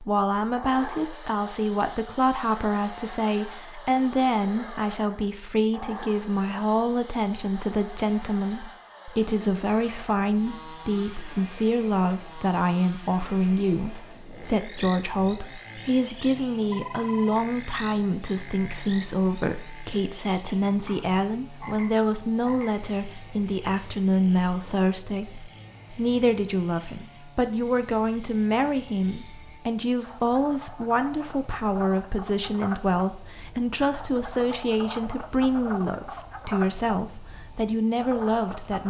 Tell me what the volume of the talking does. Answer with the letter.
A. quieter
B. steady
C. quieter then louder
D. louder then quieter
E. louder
B.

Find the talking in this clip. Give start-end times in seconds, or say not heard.
0.0-38.8.